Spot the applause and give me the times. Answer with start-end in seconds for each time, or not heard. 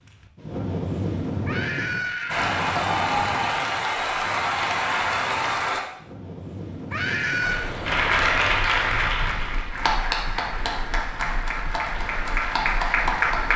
2.2-5.8, 7.4-13.5.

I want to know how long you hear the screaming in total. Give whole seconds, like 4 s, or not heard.
2 s.